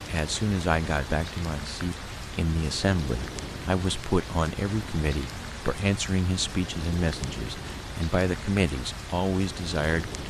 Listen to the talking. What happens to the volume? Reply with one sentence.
The loudness of the talking stays about the same.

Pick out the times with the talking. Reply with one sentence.
You can hear the talking from 0.1 to 10.2 s.